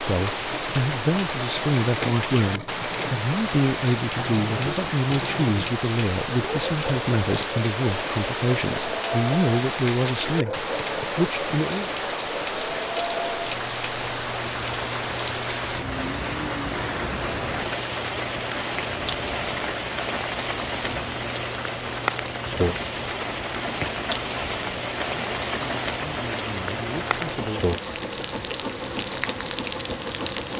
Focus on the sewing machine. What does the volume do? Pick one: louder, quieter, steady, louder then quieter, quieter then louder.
steady.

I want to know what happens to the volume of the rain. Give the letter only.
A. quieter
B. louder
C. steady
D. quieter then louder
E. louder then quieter
C.